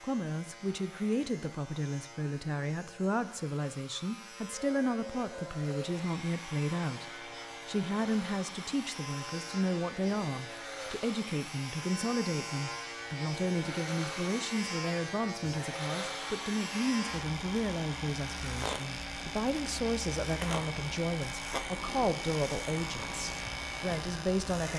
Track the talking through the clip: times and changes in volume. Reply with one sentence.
The talking can be heard from 0.0 to 24.7 s, at a steady volume.